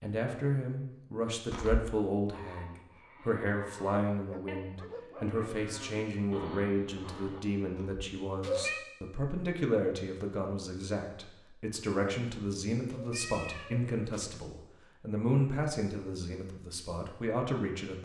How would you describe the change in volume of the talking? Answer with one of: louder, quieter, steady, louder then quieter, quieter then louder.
steady.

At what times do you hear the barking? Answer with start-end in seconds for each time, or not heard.
4.2-5.4.